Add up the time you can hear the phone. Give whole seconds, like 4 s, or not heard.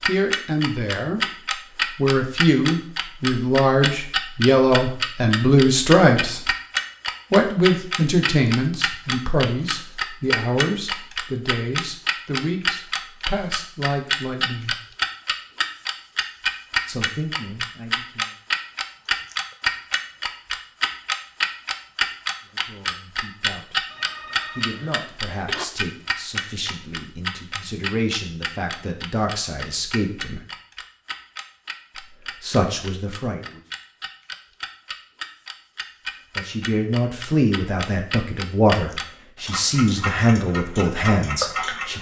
2 s.